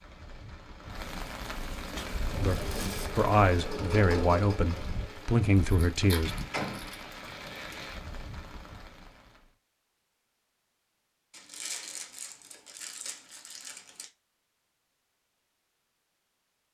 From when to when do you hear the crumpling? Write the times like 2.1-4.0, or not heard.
2.4-3.1, 5.6-7.0, 11.3-14.1.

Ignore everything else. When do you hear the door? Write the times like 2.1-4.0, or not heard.
6.2-7.0.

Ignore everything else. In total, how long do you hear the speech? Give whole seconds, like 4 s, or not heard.
4 s.